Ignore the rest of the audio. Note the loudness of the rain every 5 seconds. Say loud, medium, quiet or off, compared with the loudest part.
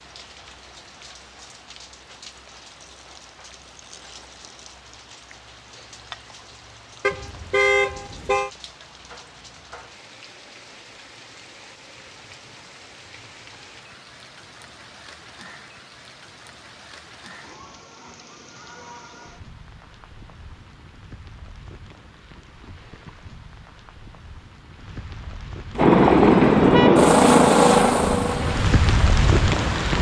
quiet, quiet, quiet, quiet, quiet, loud.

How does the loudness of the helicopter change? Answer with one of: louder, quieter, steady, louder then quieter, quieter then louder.
quieter.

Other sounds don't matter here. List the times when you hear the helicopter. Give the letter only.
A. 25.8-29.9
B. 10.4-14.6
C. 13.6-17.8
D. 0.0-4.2
A.